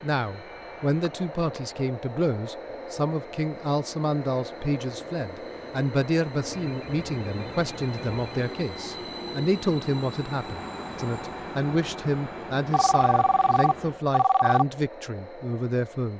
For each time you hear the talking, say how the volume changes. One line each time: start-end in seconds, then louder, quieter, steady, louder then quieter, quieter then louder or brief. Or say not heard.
0.0-16.1 steady.